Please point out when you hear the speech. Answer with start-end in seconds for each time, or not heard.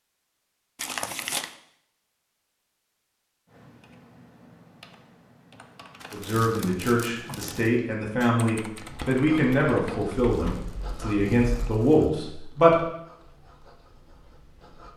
6.1-12.8.